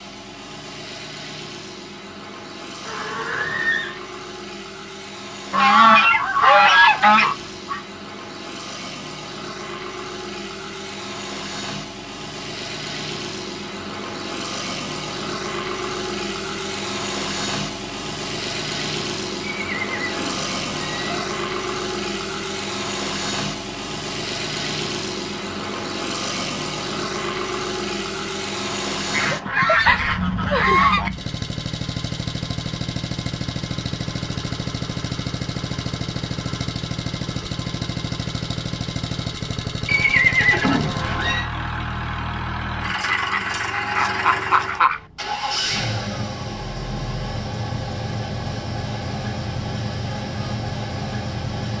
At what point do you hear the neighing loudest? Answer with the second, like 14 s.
40 s.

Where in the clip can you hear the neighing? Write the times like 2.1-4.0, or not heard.
2.9-4.0, 19.4-21.3, 39.9-41.5.